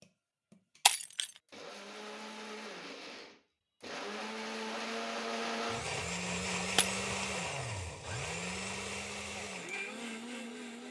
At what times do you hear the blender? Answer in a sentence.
You can hear the blender from 0.0 to 10.8 s.